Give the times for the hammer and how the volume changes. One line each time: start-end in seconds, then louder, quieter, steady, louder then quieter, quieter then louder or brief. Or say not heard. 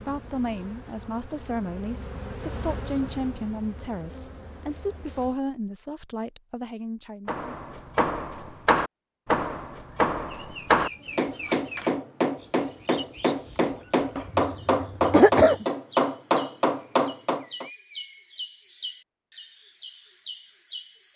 7.2-17.7 steady.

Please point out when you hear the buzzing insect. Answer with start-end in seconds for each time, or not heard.
0.0-5.3.